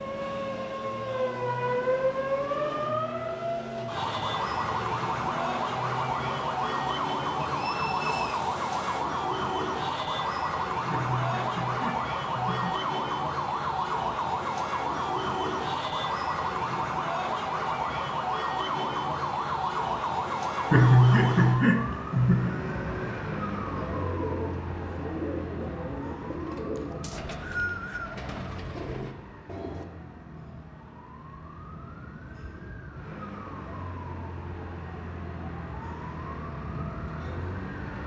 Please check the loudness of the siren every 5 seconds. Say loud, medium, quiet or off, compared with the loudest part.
loud, loud, loud, loud, loud, quiet, quiet, medium.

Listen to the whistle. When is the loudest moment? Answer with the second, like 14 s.
28 s.